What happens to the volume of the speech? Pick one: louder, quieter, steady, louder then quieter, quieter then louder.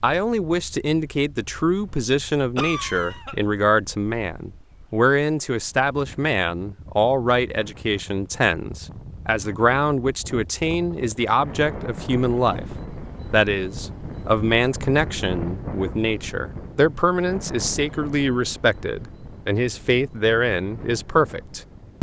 steady.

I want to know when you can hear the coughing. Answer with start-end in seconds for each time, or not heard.
2.5-3.5.